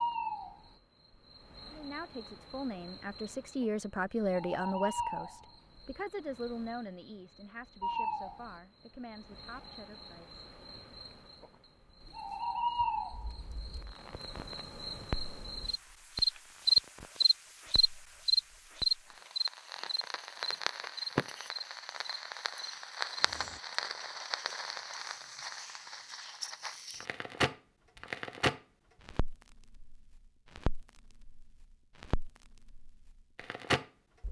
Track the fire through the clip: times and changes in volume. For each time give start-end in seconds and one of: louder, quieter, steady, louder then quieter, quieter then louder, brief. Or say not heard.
13.1-34.2 louder.